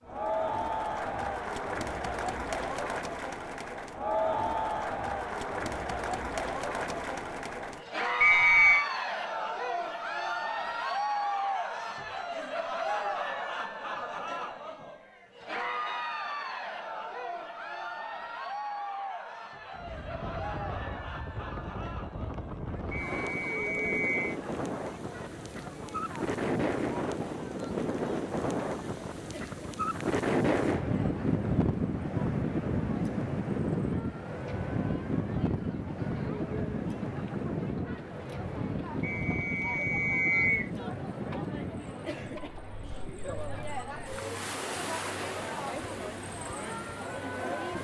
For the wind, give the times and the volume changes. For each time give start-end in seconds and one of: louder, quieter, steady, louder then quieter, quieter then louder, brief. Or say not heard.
19.7-47.8 louder then quieter.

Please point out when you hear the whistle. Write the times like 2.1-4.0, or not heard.
8.2-8.8, 22.9-24.4, 39.0-40.7.